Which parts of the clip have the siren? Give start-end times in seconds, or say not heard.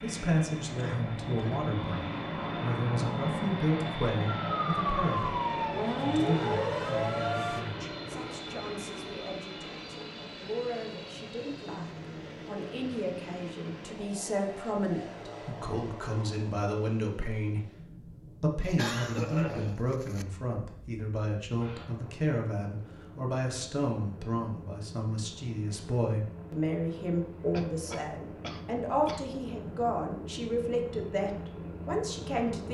4.2-7.7.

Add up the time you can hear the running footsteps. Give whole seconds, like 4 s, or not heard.
not heard.